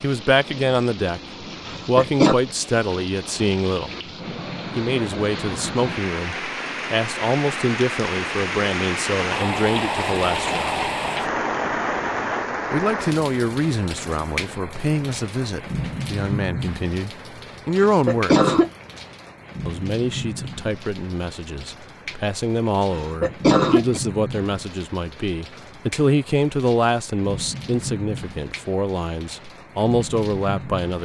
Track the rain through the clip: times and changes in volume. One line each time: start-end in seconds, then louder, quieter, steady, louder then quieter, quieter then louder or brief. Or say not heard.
0.0-31.0 louder then quieter.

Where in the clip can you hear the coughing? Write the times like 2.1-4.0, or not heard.
1.6-2.4, 17.8-18.7, 22.9-24.0.